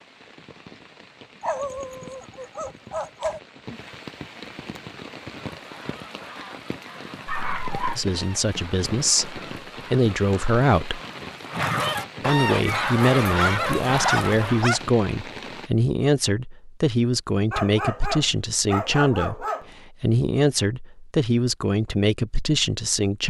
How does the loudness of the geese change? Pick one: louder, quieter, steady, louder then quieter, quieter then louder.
louder.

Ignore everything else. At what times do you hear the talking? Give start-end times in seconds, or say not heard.
8.0-11.0, 12.2-23.2.